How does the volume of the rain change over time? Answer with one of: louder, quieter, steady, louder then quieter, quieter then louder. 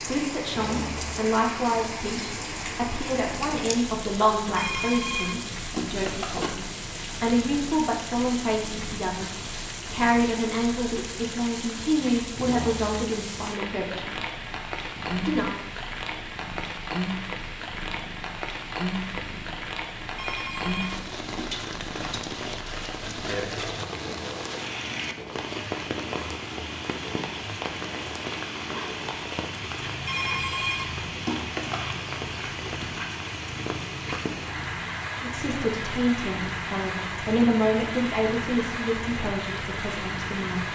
steady.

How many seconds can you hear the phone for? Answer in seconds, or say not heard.
5 s.